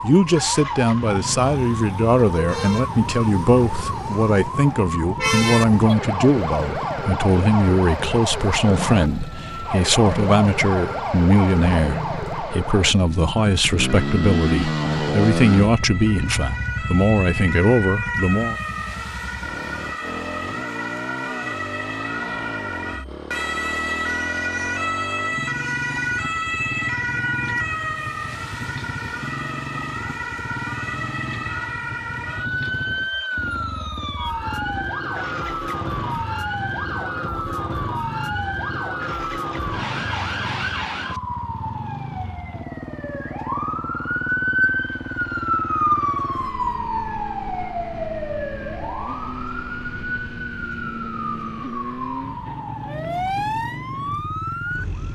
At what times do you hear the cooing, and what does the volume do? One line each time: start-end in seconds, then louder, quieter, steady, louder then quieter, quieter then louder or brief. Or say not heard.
not heard.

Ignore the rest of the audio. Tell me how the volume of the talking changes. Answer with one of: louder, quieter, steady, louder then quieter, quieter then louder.
steady.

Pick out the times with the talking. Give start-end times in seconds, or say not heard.
0.0-18.6.